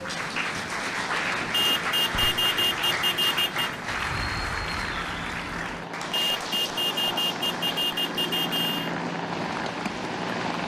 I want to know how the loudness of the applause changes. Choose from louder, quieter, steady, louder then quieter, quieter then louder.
quieter.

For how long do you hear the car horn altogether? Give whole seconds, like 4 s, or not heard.
5 s.